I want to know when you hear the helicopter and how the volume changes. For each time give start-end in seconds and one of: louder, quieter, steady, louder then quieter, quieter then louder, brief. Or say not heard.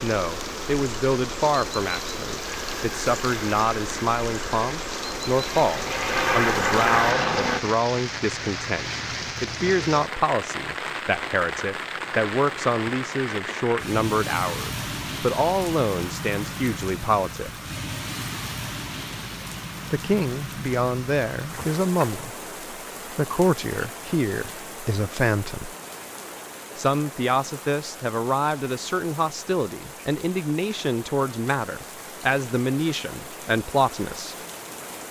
2.5-7.7 louder.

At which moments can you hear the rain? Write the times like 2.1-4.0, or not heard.
0.0-35.0.